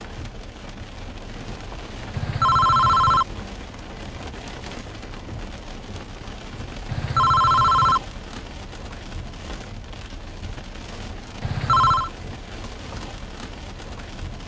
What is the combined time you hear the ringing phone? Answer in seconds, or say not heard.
3 s.